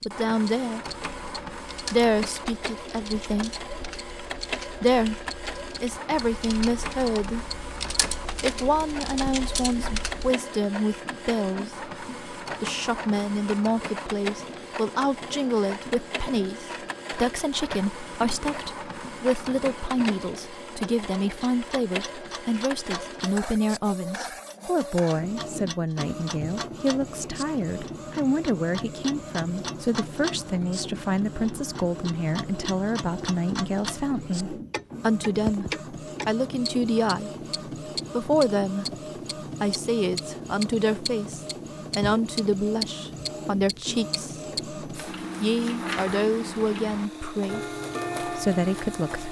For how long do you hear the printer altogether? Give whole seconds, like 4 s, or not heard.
49 s.